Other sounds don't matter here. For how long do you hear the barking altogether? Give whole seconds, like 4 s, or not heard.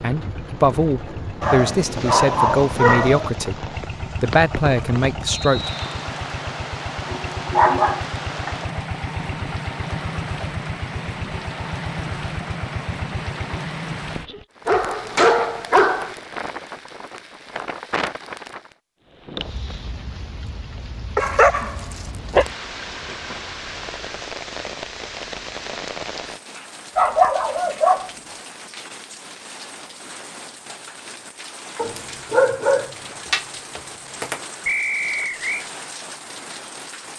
10 s.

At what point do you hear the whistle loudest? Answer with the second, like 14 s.
35 s.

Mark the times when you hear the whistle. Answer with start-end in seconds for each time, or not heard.
5.2-5.8, 34.6-35.6.